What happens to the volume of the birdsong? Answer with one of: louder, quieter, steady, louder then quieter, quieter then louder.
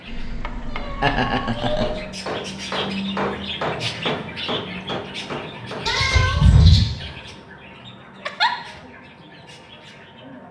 louder then quieter.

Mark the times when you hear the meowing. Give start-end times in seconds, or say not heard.
0.1-2.0, 5.8-6.8.